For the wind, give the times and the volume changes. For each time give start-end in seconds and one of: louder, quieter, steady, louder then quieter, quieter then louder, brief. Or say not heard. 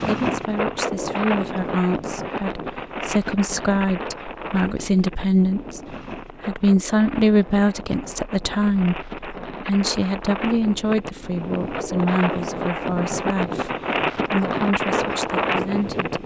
0.0-16.2 quieter then louder.